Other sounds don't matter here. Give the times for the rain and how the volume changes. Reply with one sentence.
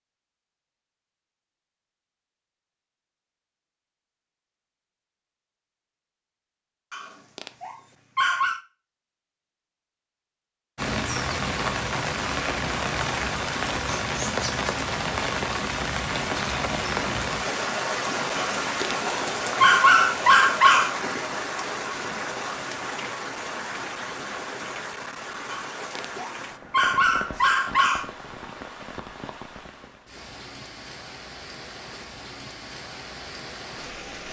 The rain can be heard from 10.8 to 34.2 s, getting quieter.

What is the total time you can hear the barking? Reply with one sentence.
The barking can be heard for 7 seconds in total.